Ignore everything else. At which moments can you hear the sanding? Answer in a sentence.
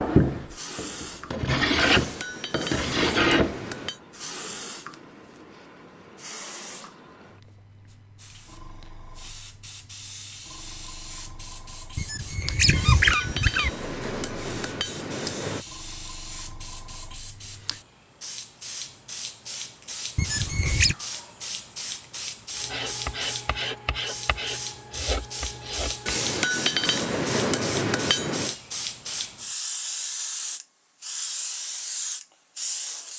You can hear the sanding from 0.0 to 3.6 s and from 22.6 to 26.3 s.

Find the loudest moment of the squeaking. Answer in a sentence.
The loudest moment of the squeaking is at 13 seconds.